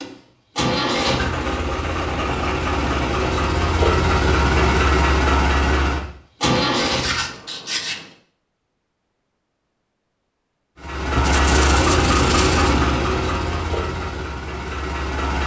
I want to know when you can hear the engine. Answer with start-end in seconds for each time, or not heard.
0.0-7.3, 10.8-15.4.